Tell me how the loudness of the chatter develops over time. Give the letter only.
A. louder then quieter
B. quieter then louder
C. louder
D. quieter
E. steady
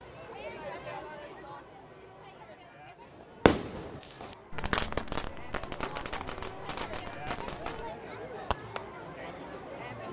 B.